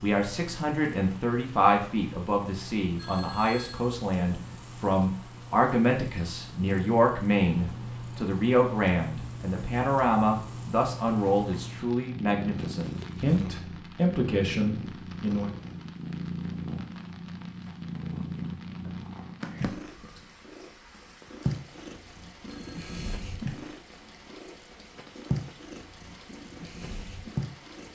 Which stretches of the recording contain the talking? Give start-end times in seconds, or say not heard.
0.0-15.5.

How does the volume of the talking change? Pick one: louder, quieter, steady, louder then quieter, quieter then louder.
steady.